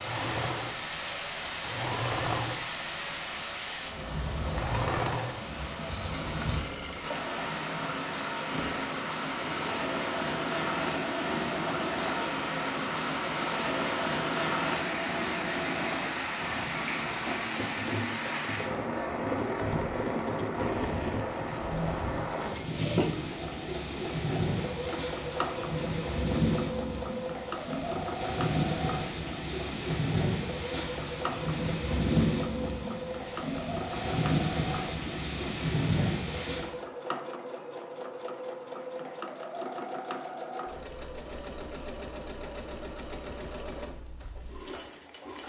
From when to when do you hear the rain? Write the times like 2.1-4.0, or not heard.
0.0-36.7.